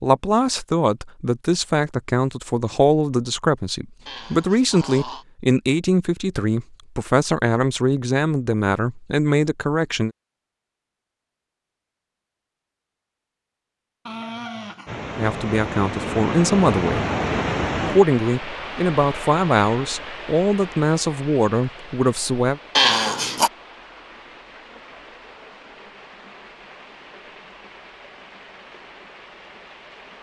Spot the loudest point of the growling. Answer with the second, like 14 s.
23 s.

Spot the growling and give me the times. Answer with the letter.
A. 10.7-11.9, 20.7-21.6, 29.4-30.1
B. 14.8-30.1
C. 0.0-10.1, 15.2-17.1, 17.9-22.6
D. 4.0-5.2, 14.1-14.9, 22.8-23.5
D.